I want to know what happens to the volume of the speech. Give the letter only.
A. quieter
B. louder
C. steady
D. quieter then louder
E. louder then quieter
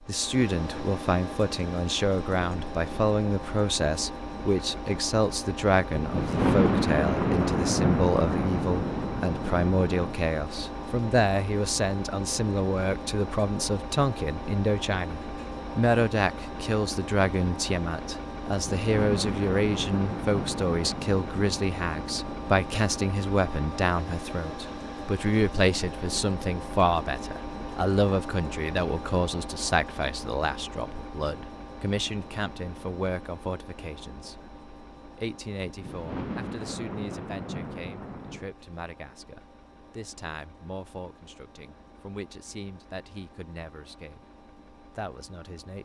A.